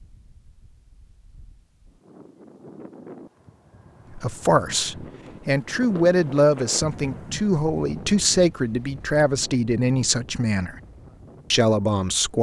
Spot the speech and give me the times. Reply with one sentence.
The speech can be heard from 4.2 to 10.8 s and from 11.5 to 12.3 s.